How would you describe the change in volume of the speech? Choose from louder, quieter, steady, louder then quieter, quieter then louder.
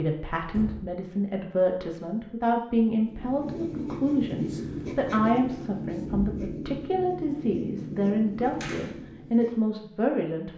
steady.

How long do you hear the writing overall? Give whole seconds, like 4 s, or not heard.
7 s.